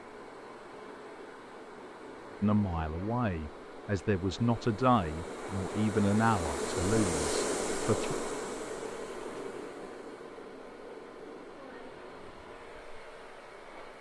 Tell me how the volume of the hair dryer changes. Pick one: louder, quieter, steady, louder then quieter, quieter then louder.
louder then quieter.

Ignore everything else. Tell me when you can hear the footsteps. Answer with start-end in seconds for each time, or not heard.
not heard.